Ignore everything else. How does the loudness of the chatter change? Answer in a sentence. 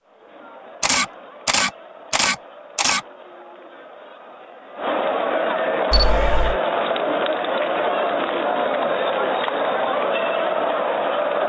The loudness of the chatter goes up.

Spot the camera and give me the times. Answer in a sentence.
The camera can be heard from 0.8 to 3.0 s and from 5.9 to 6.6 s.